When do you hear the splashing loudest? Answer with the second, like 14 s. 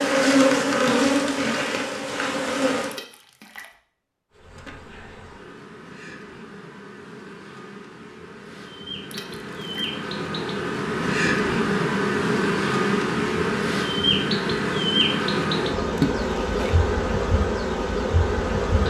16 s.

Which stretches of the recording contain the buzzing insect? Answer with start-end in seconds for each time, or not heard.
0.0-3.0, 4.3-18.8.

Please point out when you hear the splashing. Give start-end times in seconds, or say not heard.
2.9-3.8, 9.1-9.9, 15.9-16.9.